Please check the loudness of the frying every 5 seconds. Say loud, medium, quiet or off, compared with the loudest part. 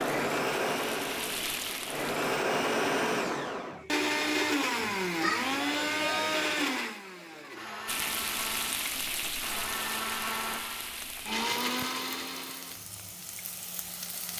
loud, loud, medium.